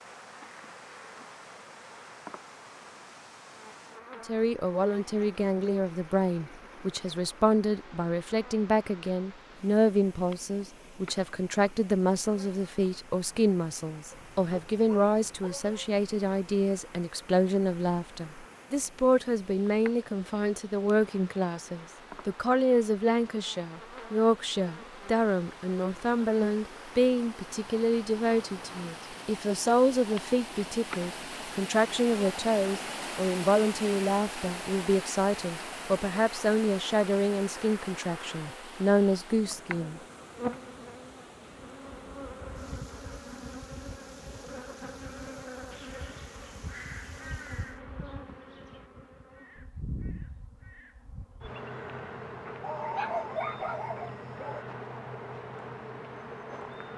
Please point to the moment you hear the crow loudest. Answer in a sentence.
The volume of the crow peaks at 47 seconds.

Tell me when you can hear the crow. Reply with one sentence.
The crow can be heard from 45.7 to 51.1 s.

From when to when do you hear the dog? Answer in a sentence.
You can hear the dog from 14.1 to 15.8 s and from 52.6 to 54.6 s.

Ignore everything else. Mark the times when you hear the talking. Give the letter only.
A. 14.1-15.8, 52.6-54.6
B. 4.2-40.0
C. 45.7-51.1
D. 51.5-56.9
B.